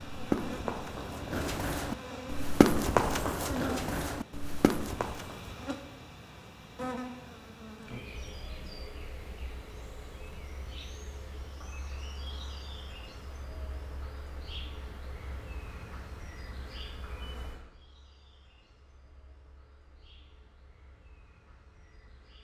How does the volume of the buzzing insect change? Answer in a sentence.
The volume of the buzzing insect goes down.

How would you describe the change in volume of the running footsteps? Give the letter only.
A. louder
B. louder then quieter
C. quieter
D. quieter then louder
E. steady
B.